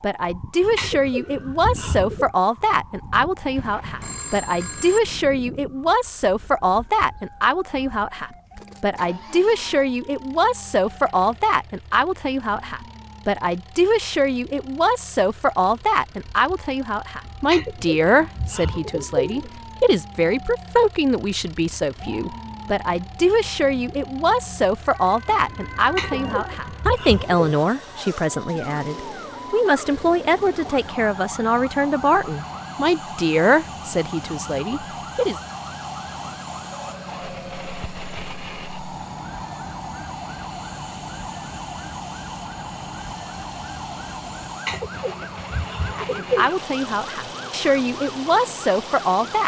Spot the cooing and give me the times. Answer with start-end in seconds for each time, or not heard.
0.8-2.3, 17.5-19.6, 25.9-27.5, 44.6-46.5.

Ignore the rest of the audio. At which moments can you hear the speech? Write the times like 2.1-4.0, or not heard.
0.0-35.4, 45.9-49.4.